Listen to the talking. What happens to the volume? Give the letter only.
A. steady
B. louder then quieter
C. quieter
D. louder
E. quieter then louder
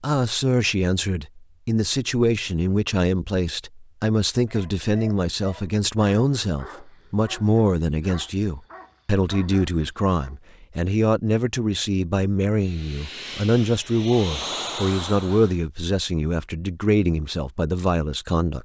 A.